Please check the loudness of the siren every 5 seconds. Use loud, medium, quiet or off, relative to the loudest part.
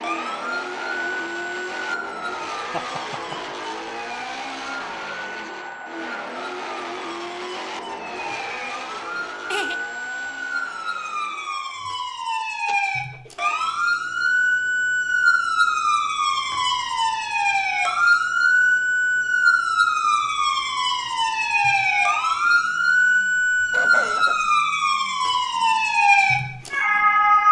quiet, quiet, medium, loud, loud, loud.